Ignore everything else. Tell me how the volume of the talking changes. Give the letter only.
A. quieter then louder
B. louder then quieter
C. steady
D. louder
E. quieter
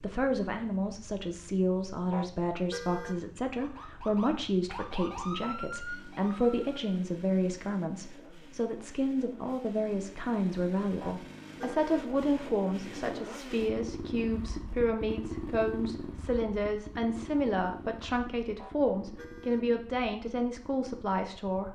C.